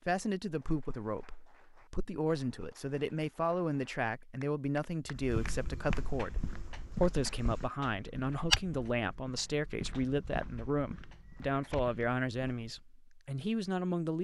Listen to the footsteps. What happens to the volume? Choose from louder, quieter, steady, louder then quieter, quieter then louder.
louder then quieter.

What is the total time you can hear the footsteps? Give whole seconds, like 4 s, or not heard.
8 s.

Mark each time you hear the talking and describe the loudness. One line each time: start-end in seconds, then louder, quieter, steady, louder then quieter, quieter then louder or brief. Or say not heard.
0.1-14.2 steady.